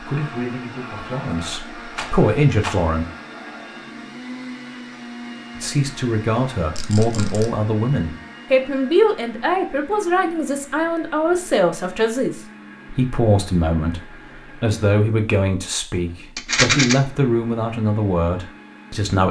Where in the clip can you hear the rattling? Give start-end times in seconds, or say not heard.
1.9-2.8, 6.8-7.5, 16.4-16.9.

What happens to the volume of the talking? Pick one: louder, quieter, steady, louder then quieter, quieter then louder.
steady.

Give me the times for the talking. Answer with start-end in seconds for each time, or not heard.
0.0-3.0, 5.5-19.2.